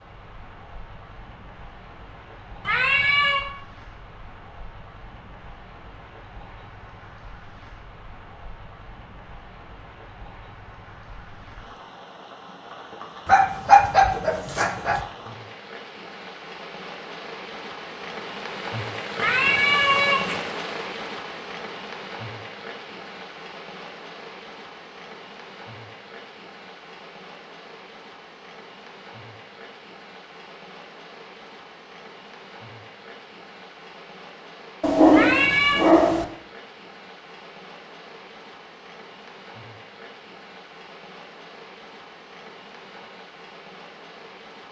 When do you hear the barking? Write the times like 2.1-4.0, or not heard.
13.2-15.1, 34.8-36.2.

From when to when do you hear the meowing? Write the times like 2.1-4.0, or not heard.
2.6-3.5, 19.1-20.4, 35.1-35.9.